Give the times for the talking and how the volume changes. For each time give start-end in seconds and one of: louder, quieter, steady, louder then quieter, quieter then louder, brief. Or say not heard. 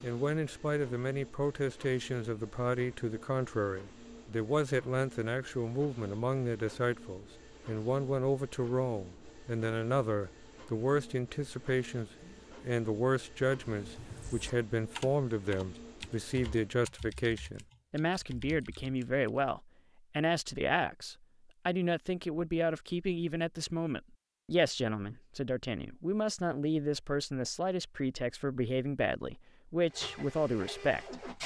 0.0-31.2 steady.